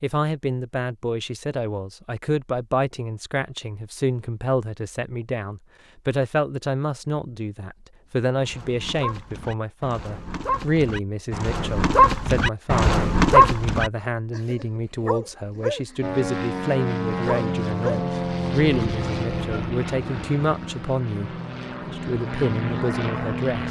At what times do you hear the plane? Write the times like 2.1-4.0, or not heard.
16.0-23.6.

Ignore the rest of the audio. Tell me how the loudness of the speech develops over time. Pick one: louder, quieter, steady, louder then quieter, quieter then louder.
steady.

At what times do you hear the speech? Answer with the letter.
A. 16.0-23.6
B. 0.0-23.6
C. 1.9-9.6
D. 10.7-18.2
B.